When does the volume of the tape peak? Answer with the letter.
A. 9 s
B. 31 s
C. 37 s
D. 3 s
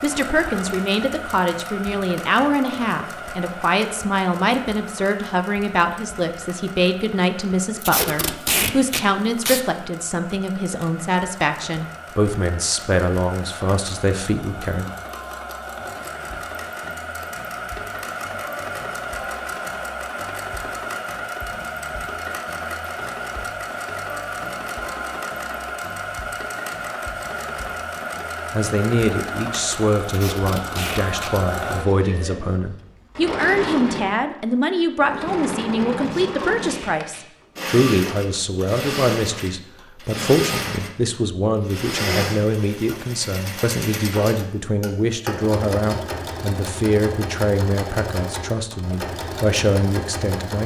A.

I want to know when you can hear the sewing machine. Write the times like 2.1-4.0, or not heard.
0.0-50.6.